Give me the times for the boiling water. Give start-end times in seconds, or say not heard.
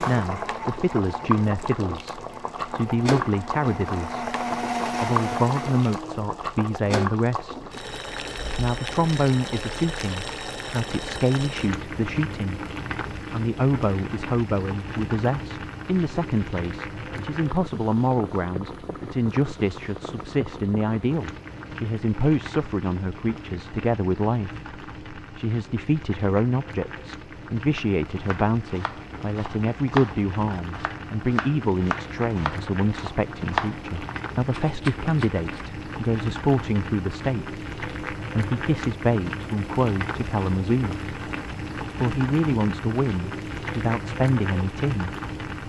0.0-45.6.